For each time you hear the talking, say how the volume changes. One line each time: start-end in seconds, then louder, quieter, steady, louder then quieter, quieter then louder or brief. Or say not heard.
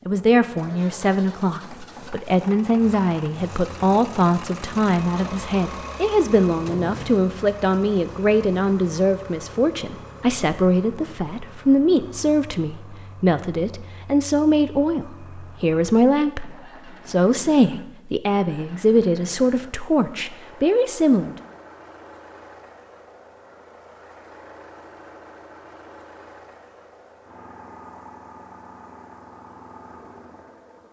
0.1-21.4 steady.